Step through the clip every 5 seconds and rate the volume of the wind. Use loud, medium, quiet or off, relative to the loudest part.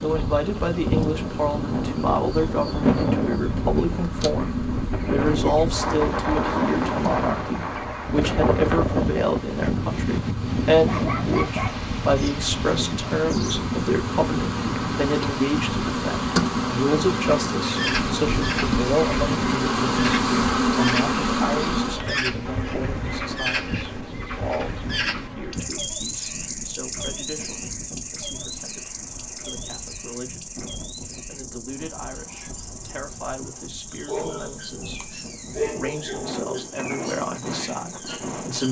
loud, loud, loud, medium, medium, quiet, quiet, medium.